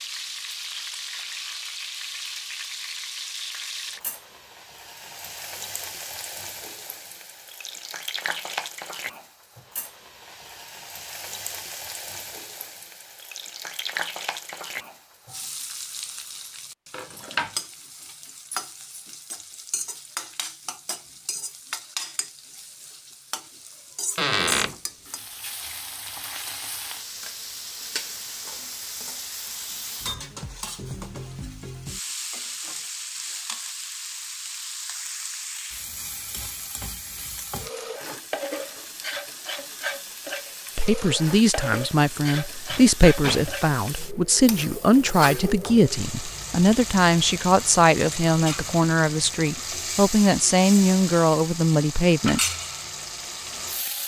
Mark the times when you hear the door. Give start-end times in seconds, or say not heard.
24.1-24.8, 42.2-43.7.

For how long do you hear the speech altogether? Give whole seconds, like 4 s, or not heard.
12 s.